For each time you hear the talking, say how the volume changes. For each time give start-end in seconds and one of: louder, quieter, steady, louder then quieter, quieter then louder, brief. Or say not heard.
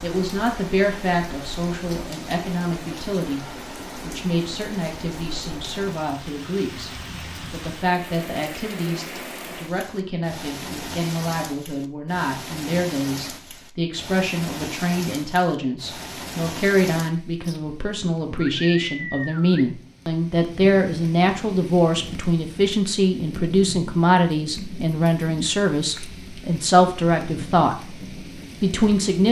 0.0-6.9 quieter
7.5-27.9 louder
28.6-29.2 brief.